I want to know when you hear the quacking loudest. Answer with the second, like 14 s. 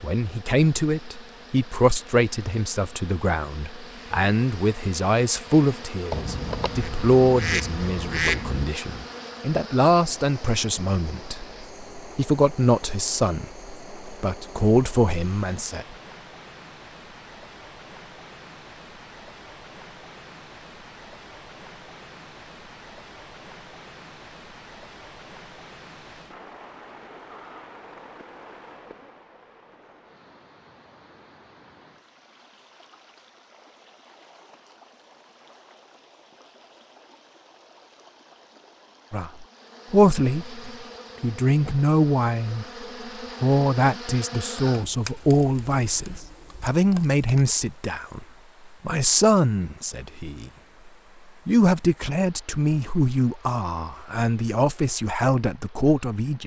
8 s.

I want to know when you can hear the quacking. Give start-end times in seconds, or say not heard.
6.1-8.7.